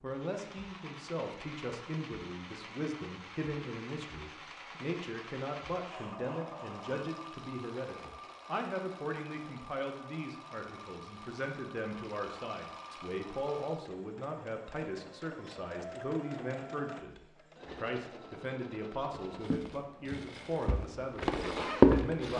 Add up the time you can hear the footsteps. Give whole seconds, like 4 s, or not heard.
3 s.